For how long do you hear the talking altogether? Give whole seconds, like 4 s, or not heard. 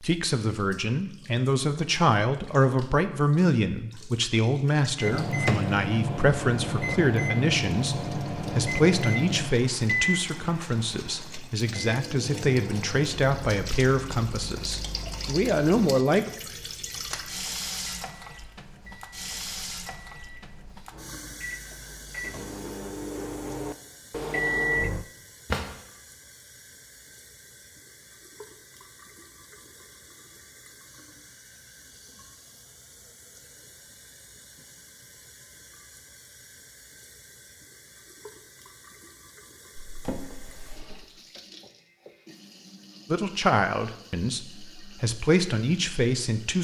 20 s.